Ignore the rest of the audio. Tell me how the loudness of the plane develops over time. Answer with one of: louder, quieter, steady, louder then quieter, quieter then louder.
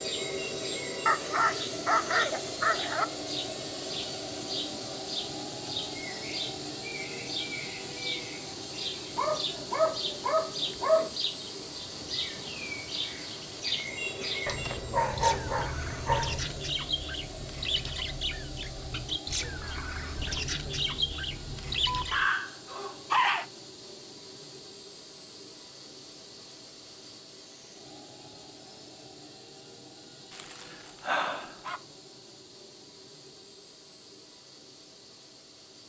quieter.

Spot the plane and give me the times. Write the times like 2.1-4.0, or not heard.
0.0-35.8.